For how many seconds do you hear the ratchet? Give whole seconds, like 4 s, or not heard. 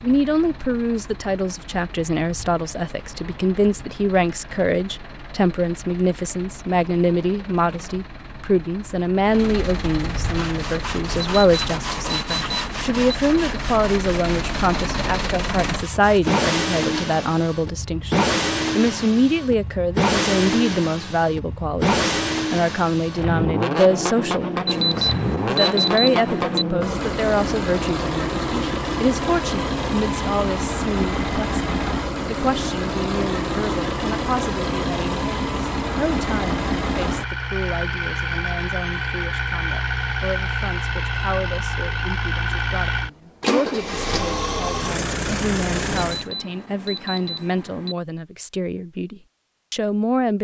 not heard.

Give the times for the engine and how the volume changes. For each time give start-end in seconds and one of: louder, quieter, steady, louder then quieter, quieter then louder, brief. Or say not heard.
0.0-46.2 louder.